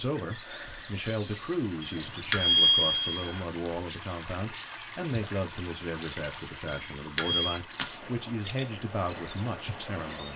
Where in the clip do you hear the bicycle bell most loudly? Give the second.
3 s.